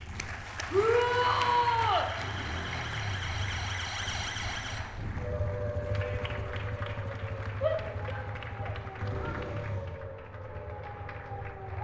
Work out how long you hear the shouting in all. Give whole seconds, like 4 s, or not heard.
3 s.